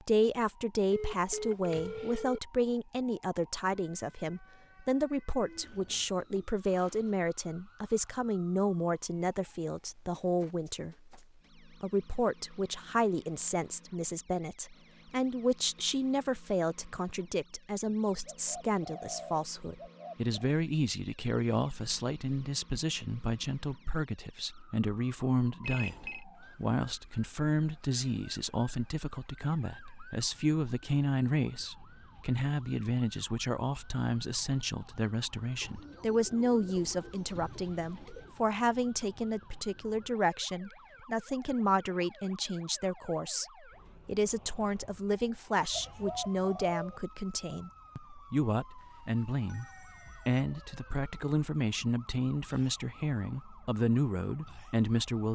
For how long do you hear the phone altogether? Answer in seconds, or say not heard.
4 s.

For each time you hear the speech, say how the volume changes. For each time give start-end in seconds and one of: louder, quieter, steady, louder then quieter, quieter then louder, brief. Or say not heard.
0.0-55.2 steady.